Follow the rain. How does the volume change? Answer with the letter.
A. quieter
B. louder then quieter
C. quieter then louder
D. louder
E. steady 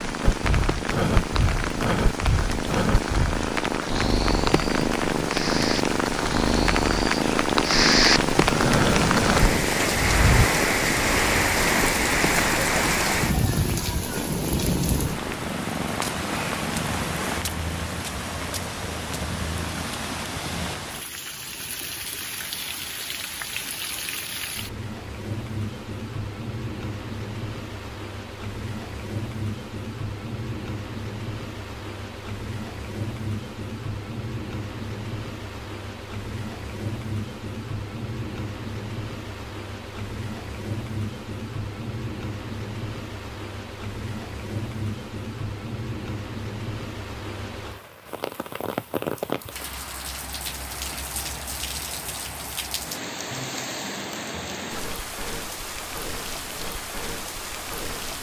A.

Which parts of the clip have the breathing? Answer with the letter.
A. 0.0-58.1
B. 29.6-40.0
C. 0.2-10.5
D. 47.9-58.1
C.